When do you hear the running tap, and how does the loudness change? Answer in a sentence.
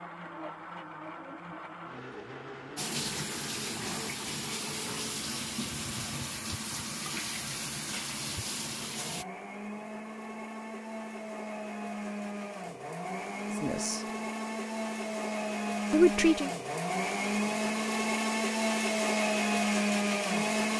You can hear the running tap from 2.8 to 9.2 s, at a steady volume.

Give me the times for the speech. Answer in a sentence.
The speech can be heard from 13.6 to 14.0 s and from 15.9 to 16.5 s.